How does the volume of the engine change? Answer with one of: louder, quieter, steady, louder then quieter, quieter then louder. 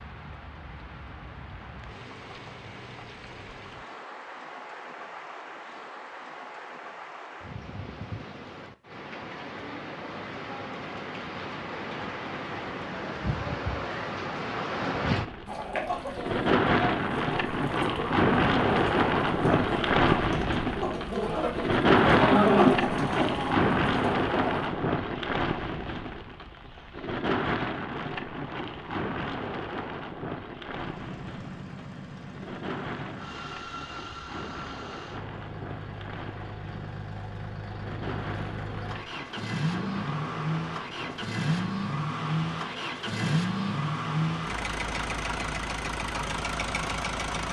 louder.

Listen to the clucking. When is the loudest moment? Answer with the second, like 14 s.
23 s.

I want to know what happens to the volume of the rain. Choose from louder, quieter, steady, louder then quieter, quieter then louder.
louder then quieter.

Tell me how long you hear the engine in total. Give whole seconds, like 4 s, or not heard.
17 s.